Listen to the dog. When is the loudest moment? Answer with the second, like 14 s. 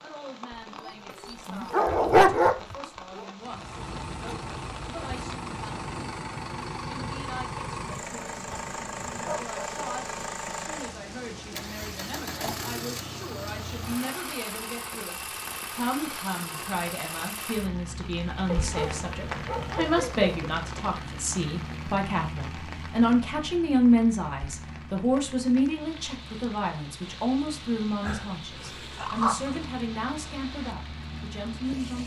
2 s.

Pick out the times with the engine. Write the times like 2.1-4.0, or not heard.
3.4-32.0.